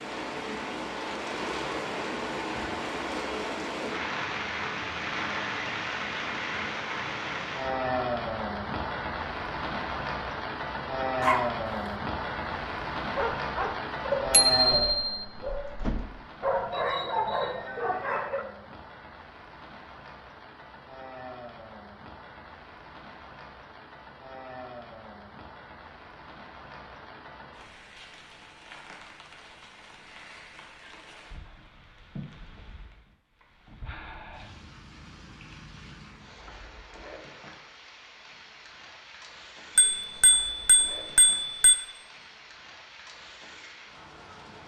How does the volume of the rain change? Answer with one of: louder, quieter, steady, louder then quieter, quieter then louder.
quieter.